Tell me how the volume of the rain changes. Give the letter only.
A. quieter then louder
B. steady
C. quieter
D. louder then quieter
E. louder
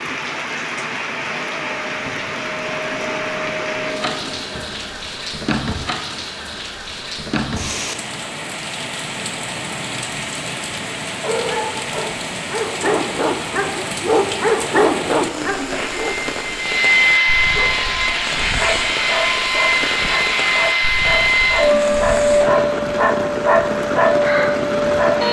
B.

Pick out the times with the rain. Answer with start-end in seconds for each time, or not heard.
0.0-25.2.